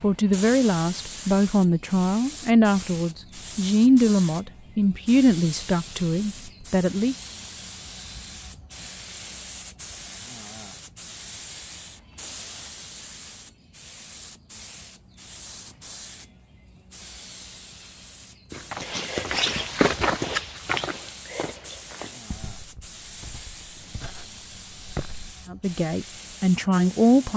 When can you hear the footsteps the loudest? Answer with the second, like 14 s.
20 s.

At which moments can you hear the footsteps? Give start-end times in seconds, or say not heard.
18.5-25.2.